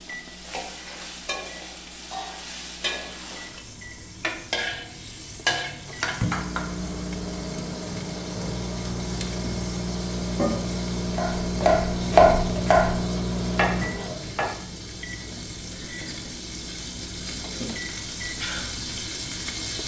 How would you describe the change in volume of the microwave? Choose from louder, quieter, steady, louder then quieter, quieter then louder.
louder then quieter.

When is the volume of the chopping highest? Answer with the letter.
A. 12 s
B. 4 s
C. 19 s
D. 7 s
A.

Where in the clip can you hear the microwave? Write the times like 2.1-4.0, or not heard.
0.0-19.8.